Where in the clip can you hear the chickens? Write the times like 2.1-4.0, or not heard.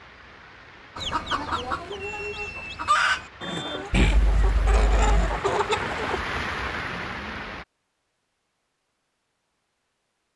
0.9-6.2.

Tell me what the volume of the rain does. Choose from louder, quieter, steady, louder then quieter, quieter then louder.
louder.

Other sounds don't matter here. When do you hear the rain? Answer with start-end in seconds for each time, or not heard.
0.0-7.7.